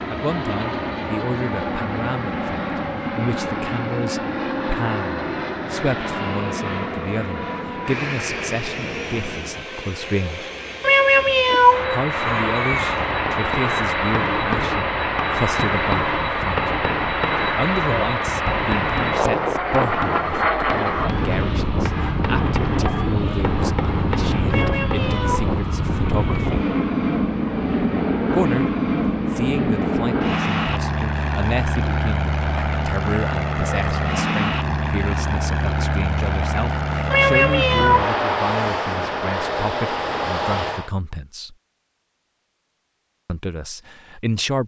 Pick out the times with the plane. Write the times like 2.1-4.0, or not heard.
0.0-40.9.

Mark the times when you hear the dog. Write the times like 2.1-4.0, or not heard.
not heard.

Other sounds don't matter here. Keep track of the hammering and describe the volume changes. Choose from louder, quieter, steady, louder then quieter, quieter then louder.
steady.